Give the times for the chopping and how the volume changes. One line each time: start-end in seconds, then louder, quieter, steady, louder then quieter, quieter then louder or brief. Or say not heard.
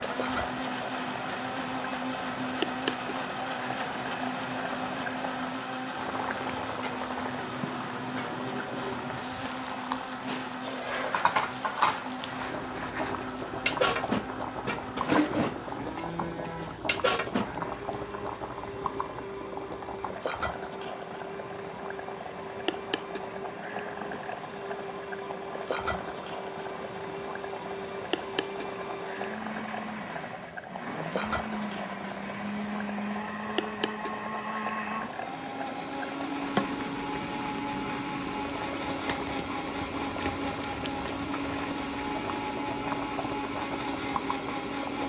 not heard.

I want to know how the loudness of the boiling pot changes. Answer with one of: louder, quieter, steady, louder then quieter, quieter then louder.
steady.